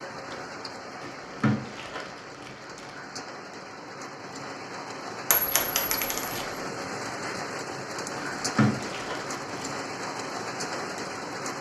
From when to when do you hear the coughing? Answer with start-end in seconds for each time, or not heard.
not heard.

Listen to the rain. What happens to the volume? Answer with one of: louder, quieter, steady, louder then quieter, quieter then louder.
louder.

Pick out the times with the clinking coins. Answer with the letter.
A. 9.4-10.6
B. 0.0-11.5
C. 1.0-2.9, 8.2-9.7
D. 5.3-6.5
D.